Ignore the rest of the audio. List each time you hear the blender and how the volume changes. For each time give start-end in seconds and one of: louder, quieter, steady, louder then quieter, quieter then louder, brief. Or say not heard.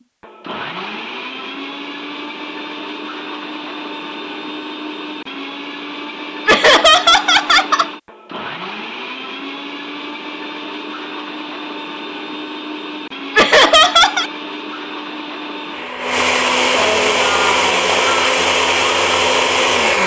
0.2-20.0 louder.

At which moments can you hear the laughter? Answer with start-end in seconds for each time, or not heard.
6.5-7.9, 13.3-14.3.